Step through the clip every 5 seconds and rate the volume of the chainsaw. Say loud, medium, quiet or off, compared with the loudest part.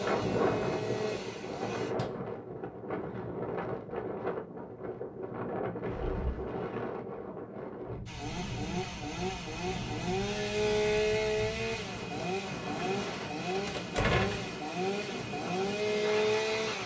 medium, medium, loud, loud.